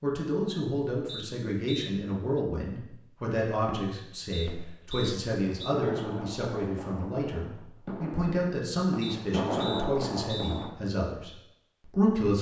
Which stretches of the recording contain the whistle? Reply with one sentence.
You can hear the whistle from 1.1 to 2.4 s, from 4.3 to 5.8 s and from 9.0 to 10.7 s.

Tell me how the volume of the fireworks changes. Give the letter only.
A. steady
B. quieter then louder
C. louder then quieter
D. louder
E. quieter
D.